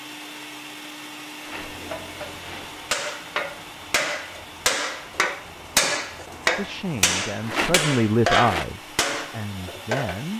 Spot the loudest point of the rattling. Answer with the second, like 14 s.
8 s.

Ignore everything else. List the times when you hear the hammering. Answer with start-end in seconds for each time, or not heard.
1.4-10.2.